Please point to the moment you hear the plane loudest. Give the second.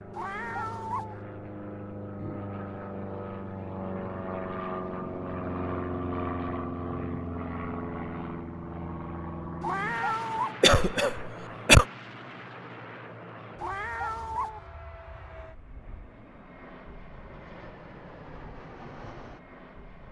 6 s.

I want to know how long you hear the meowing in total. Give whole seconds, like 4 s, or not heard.
3 s.